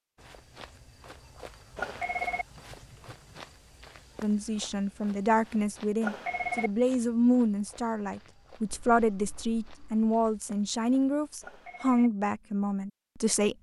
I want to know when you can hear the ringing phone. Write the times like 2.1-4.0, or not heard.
1.8-2.5, 6.0-6.7, 11.4-12.1.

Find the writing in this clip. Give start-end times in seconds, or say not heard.
not heard.